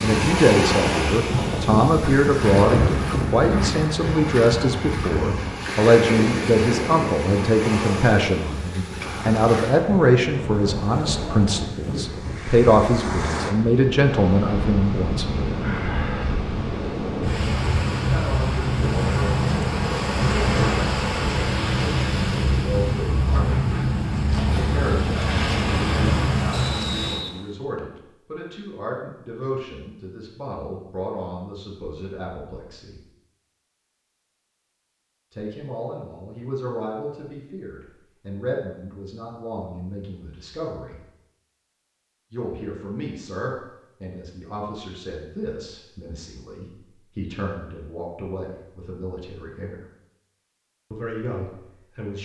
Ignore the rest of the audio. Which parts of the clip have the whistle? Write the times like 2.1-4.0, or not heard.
26.5-28.0.